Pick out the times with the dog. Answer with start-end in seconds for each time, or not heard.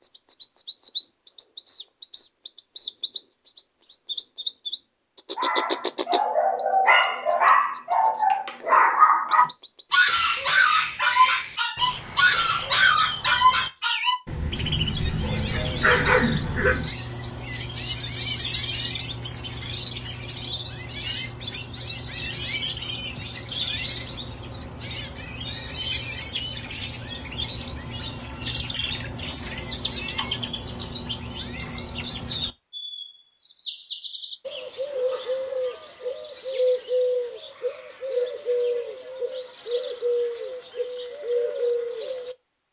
5.3-16.9.